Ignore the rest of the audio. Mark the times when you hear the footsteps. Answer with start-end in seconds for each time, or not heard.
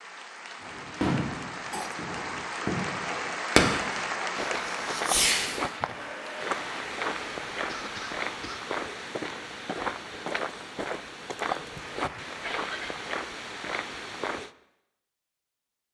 4.3-14.5.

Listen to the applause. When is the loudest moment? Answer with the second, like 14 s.
4 s.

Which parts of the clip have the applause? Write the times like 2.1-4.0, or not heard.
0.0-14.3.